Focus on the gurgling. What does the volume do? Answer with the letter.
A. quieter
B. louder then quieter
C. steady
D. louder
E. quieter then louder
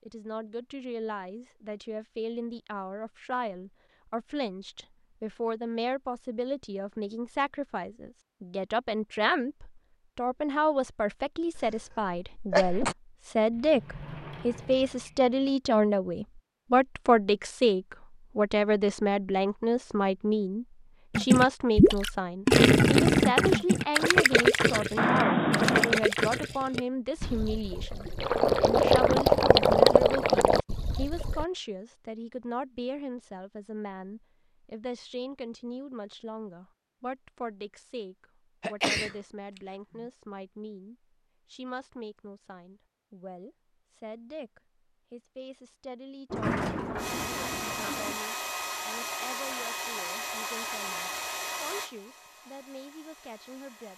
E.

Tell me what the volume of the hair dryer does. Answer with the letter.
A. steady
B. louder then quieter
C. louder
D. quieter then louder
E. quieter
E.